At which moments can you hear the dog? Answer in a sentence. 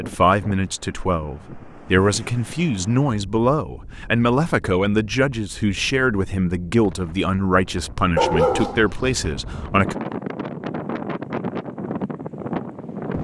The dog can be heard from 8.2 to 9.2 s.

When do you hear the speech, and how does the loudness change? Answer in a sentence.
The speech can be heard from 0.0 to 9.9 s, at a steady volume.